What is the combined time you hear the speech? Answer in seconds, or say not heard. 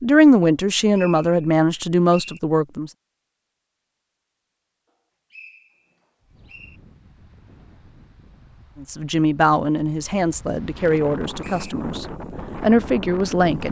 8 s.